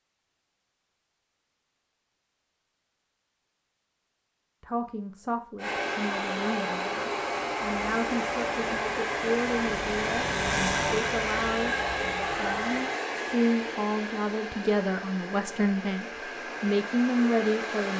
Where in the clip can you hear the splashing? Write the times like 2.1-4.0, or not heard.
not heard.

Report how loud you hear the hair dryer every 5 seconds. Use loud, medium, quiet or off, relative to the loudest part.
off, loud, loud, medium.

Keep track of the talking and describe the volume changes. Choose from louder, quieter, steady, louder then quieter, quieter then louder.
louder.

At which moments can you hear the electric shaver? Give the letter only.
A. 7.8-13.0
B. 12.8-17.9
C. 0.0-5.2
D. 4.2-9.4
A.